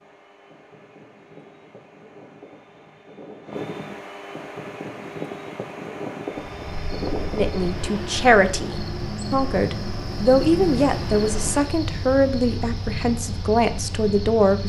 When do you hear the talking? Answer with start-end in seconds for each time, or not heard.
7.3-14.6.